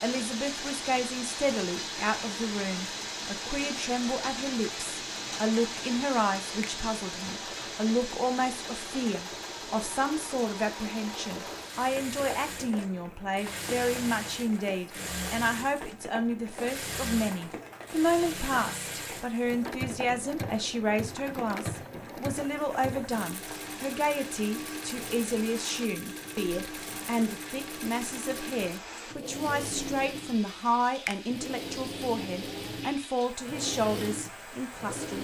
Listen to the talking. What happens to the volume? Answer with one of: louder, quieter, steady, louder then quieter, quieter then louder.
steady.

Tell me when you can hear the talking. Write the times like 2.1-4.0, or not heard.
0.0-35.1.